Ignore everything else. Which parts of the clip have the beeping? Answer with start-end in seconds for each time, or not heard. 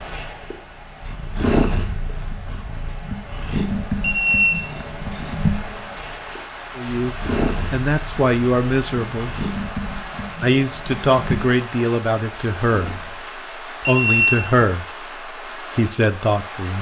4.0-4.9, 13.8-14.6.